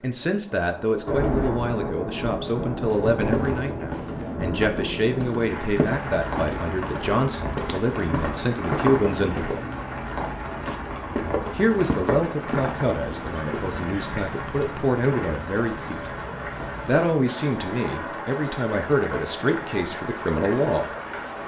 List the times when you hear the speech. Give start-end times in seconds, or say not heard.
0.0-9.4, 11.6-16.1, 16.9-20.9.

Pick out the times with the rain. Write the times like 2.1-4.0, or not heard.
0.0-21.4.